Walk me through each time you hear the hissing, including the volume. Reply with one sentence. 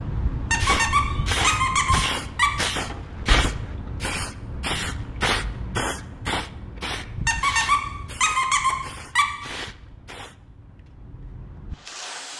You can hear the hissing from 0.0 to 12.3 s, getting quieter.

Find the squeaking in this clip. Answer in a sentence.
The squeaking can be heard from 0.5 to 2.5 s and from 7.2 to 9.2 s.